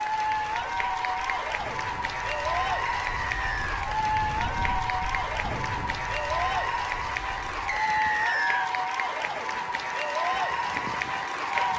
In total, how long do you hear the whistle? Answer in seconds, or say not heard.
2 s.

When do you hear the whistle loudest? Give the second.
8 s.